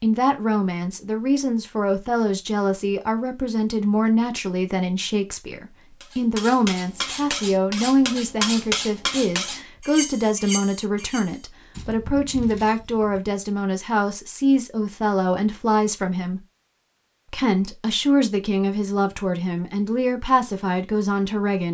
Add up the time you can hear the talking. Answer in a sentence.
You can hear the talking for 21 seconds altogether.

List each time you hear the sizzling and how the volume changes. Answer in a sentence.
You can't hear the sizzling here.